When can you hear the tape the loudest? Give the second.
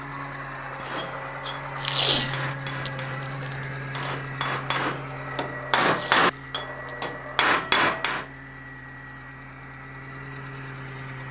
2 s.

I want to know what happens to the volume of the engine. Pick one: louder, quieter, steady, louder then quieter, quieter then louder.
quieter.